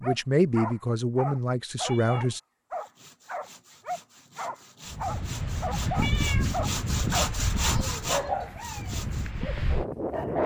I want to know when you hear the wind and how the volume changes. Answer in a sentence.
The wind can be heard from 4.9 to 10.4 s, getting quieter then louder.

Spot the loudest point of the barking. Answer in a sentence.
The volume of the barking peaks at 8 seconds.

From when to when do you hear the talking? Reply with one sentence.
You can hear the talking from 0.0 to 2.4 s.